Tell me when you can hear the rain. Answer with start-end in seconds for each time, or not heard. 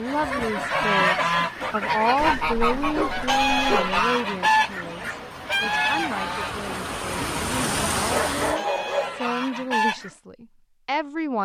0.0-8.6.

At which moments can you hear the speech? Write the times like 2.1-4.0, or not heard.
0.0-11.4.